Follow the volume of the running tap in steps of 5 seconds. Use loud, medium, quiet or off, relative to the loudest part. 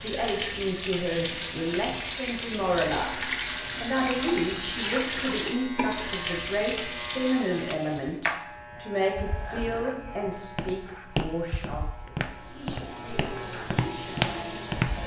loud, loud, medium.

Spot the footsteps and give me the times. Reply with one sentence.
You can hear the footsteps from 9.5 to 15.0 s.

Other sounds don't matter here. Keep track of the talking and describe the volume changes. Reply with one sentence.
The loudness of the talking goes down.